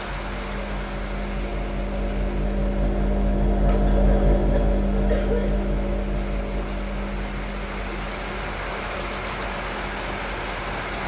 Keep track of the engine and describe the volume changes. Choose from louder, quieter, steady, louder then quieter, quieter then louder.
louder then quieter.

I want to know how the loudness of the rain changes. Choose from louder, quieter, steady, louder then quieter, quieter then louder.
quieter then louder.